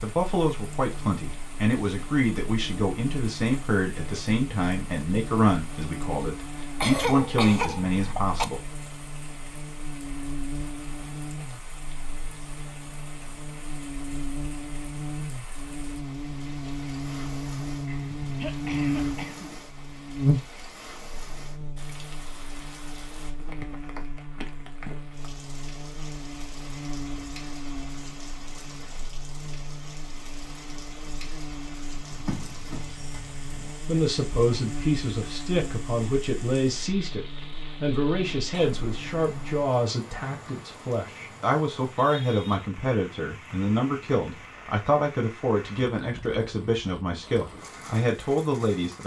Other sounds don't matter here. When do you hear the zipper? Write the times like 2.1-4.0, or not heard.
32.1-33.8.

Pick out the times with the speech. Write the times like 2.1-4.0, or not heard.
0.0-8.7, 33.9-49.0.